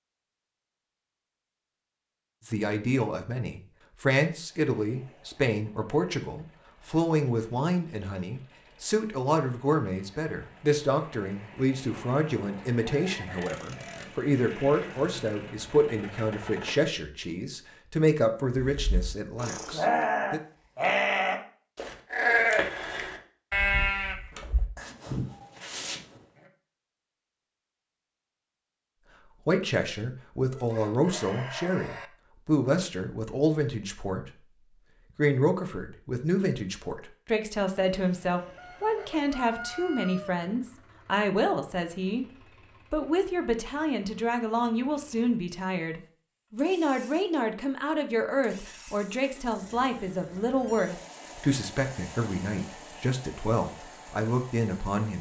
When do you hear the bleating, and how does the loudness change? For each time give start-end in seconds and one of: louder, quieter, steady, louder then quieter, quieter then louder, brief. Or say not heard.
18.6-26.0 quieter.